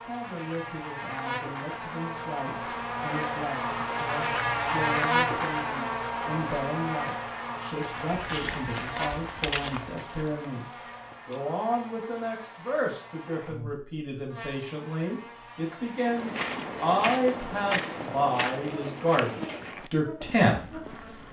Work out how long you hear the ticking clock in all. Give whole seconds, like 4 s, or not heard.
not heard.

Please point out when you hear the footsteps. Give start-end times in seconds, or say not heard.
7.8-11.4, 16.0-21.2.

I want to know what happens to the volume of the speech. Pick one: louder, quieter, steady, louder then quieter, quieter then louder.
louder.